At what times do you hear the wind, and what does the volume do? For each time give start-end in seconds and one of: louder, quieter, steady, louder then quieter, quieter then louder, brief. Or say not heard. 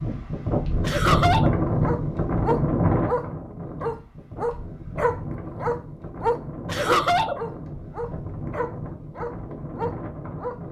0.0-10.6 quieter.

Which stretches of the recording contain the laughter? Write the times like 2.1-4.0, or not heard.
0.8-1.6, 6.7-7.4.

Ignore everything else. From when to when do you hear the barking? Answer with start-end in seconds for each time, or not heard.
1.8-10.6.